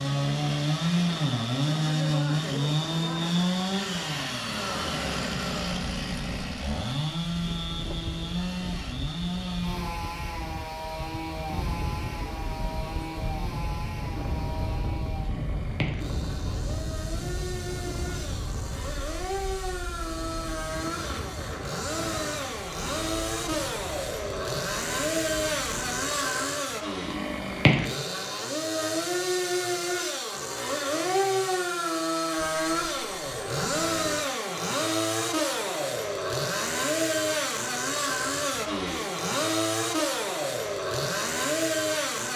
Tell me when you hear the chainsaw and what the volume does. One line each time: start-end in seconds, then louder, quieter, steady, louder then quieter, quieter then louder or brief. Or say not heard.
0.0-42.3 quieter then louder.